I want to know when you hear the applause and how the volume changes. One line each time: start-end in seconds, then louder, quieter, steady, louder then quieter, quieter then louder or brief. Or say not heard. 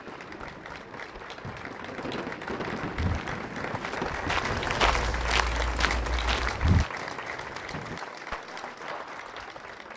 0.0-9.9 louder then quieter.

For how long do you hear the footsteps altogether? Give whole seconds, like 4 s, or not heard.
4 s.